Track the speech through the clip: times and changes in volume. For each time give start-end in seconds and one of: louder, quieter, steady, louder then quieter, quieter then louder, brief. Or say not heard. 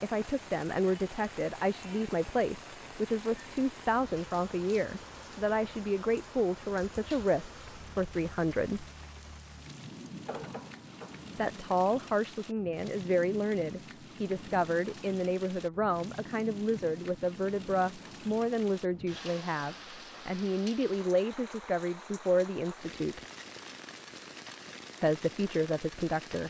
0.0-8.8 steady
11.3-23.2 steady
25.0-26.4 brief.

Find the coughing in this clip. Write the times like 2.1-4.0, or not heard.
10.2-11.3.